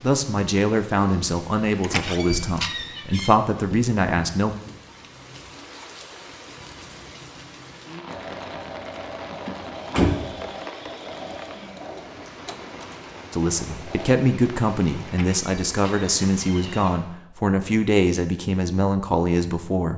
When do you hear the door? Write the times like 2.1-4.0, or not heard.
1.8-3.4, 9.4-10.4, 15.1-16.9.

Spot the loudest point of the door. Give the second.
10 s.